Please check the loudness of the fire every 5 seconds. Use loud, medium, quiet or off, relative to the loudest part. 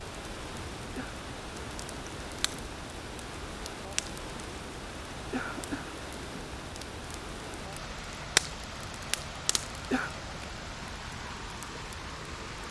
medium, loud, quiet.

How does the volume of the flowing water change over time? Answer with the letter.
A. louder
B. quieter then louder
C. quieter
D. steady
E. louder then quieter
D.